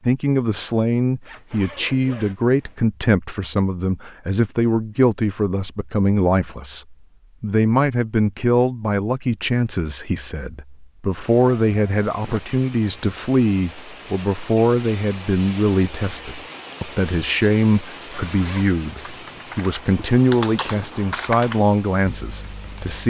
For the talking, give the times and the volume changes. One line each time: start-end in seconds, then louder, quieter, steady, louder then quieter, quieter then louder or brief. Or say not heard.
0.1-23.0 steady.